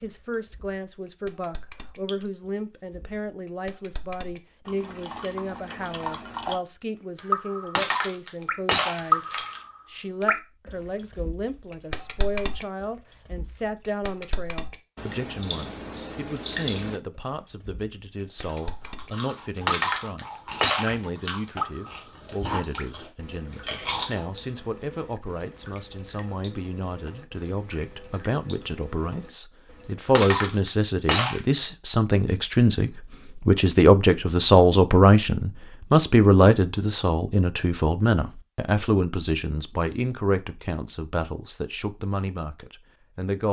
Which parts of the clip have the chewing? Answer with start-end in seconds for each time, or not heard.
18.4-24.2.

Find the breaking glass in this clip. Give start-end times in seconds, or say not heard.
7.8-9.6, 19.6-20.9, 30.1-31.4.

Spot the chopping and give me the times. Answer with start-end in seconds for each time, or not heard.
not heard.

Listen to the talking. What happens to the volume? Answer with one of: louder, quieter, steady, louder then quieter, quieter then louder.
louder.